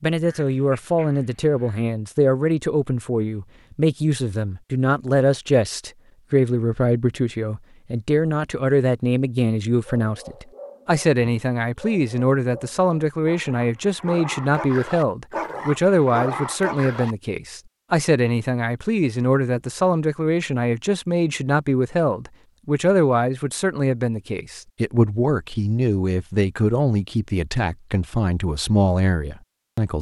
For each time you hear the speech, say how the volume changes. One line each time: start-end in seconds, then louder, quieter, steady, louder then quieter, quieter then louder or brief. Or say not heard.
0.0-29.9 steady.